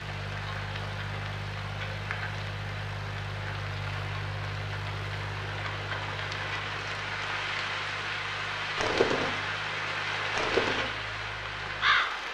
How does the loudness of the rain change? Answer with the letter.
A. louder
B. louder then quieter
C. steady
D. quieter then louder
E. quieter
A.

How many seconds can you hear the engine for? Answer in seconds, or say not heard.
12 s.